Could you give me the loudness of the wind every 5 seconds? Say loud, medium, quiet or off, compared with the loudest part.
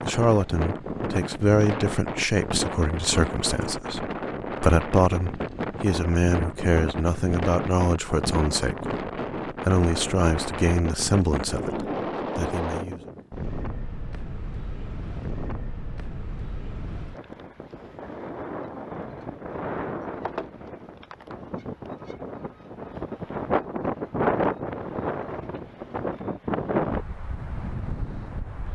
loud, loud, loud, medium, loud, loud.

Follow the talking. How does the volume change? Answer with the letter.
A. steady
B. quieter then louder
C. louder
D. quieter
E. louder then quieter
A.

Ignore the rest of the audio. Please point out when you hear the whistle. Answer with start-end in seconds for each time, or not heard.
not heard.